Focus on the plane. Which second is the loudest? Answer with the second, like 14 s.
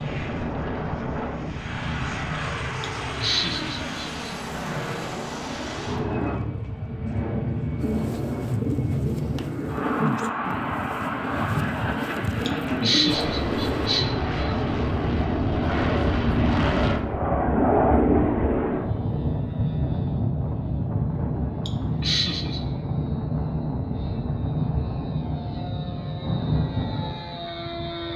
18 s.